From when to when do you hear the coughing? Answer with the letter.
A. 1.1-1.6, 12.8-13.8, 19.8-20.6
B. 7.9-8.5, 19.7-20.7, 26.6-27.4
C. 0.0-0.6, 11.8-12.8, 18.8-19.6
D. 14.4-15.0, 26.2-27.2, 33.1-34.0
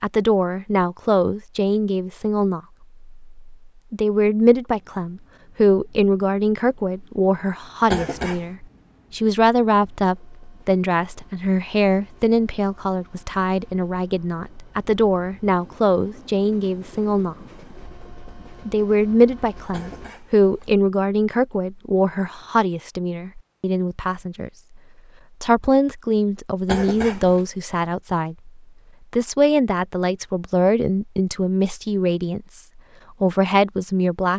B.